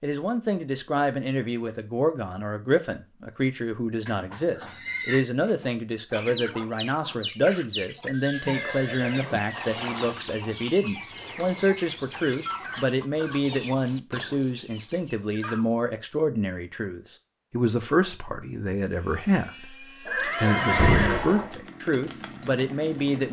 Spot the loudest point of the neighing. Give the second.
21 s.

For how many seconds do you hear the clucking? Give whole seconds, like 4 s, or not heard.
10 s.